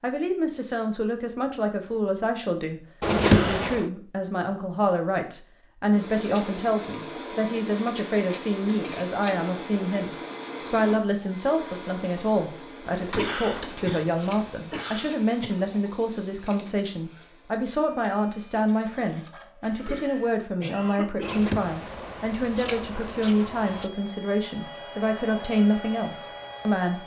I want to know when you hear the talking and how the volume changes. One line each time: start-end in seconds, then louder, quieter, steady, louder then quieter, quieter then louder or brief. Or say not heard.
0.0-27.0 steady.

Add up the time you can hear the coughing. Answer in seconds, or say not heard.
4 s.